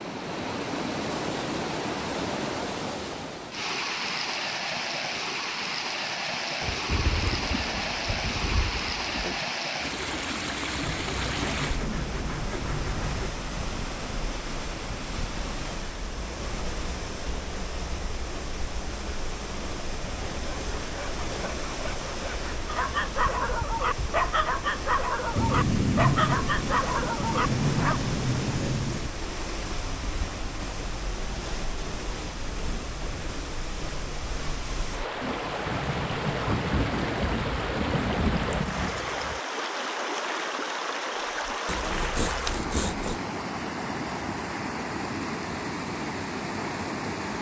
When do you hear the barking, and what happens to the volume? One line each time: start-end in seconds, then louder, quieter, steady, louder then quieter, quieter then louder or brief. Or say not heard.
22.6-28.0 steady.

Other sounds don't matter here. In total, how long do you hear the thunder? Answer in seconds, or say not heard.
11 s.